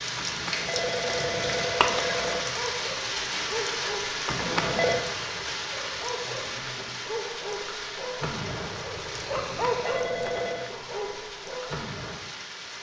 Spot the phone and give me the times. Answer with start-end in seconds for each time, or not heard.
0.1-2.4, 4.2-5.0, 9.3-10.8.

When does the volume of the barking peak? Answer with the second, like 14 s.
10 s.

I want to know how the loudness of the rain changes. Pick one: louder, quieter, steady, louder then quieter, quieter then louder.
quieter.